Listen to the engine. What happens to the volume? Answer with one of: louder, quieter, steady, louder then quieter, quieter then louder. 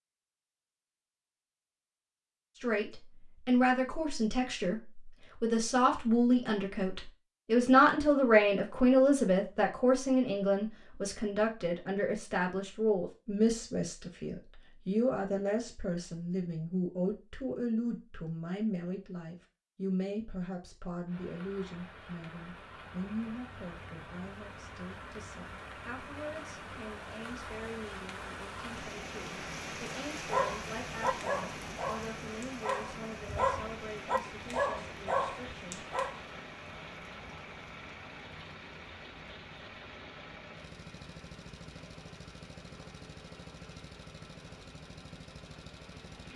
steady.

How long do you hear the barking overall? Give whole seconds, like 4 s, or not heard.
6 s.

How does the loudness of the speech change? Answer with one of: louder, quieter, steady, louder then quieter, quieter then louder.
quieter.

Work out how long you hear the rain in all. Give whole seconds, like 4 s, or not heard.
25 s.